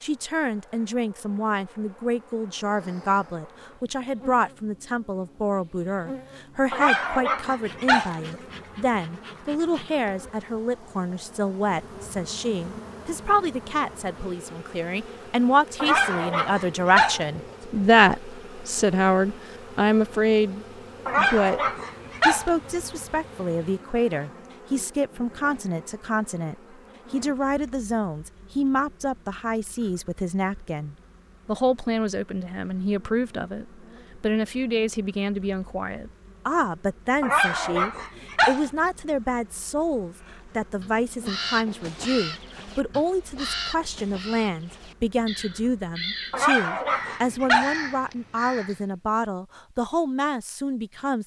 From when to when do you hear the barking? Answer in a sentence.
You can hear the barking from 6.7 to 8.2 s, from 15.8 to 17.2 s, from 21.1 to 22.5 s, from 37.2 to 38.7 s and from 46.3 to 47.8 s.